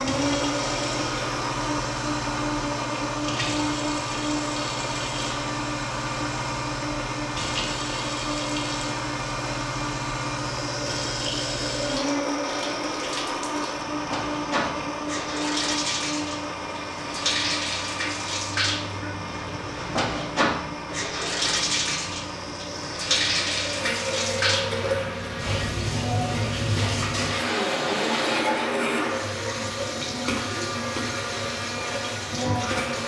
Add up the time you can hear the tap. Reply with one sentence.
You can hear the tap for 33 seconds altogether.